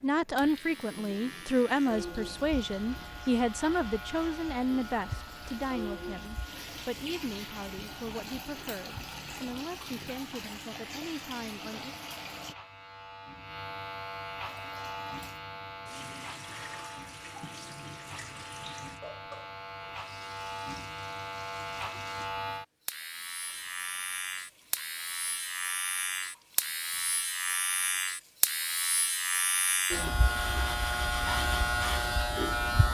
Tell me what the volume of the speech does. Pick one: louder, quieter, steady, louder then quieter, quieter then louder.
quieter.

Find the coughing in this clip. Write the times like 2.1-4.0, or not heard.
not heard.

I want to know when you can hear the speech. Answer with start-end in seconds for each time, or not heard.
0.0-11.9.